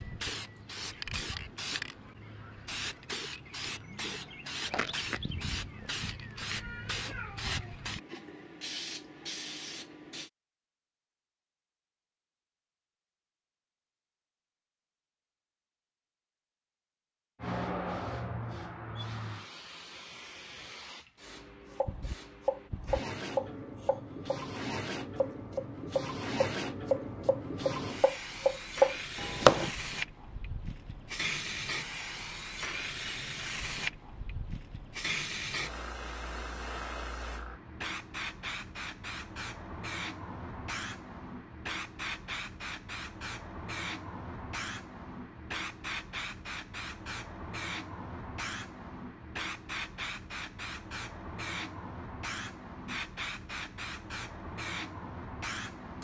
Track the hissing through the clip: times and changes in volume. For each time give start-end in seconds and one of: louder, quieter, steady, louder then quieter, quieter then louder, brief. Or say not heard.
0.0-10.3 steady
17.4-56.0 steady.